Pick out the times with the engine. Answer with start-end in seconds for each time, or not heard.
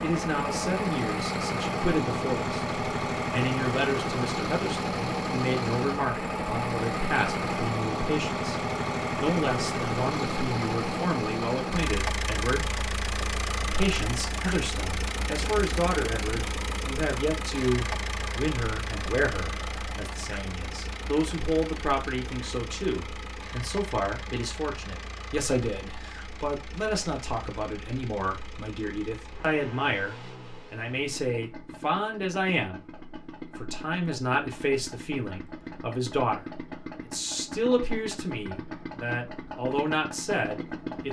0.0-41.0.